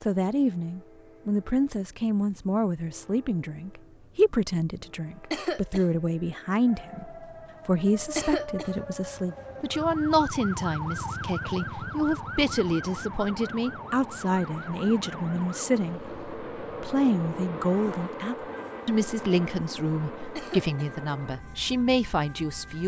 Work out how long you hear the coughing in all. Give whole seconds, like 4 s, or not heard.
2 s.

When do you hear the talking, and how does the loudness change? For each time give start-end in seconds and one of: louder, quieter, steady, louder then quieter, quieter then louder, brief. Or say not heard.
0.0-22.8 steady.